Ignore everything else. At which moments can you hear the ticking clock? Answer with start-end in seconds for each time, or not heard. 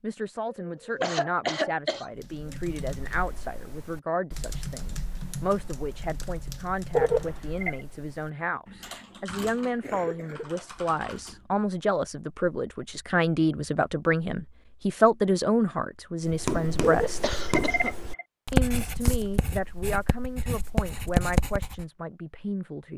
not heard.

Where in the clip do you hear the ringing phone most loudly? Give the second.
7 s.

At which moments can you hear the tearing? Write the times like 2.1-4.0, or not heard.
not heard.